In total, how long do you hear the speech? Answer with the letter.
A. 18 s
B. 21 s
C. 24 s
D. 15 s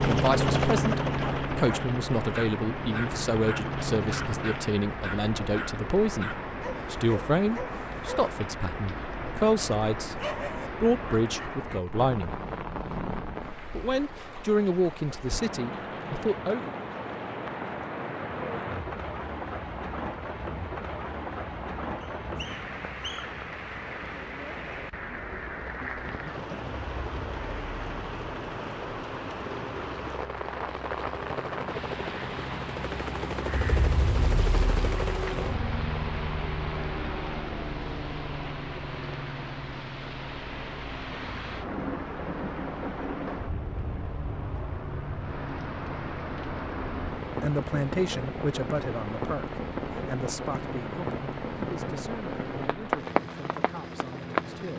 B.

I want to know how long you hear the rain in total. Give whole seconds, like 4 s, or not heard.
55 s.